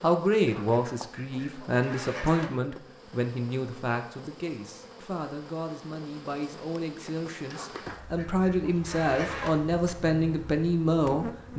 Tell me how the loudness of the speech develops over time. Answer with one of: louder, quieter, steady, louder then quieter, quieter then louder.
quieter then louder.